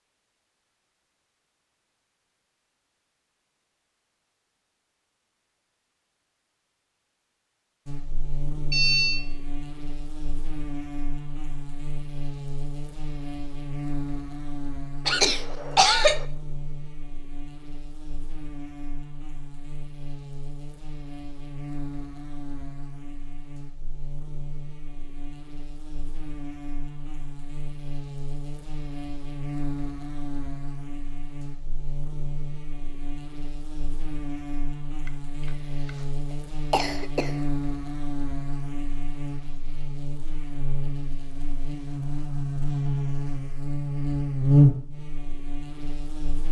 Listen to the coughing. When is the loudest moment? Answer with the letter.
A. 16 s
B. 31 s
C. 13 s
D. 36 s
A.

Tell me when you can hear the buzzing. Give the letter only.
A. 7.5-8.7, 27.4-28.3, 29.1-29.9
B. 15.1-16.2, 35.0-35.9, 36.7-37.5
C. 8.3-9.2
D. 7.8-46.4
D.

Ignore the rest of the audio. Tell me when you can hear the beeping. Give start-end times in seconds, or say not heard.
8.3-9.2.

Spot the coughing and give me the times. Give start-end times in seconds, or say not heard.
15.1-16.2, 35.0-35.9, 36.7-37.5.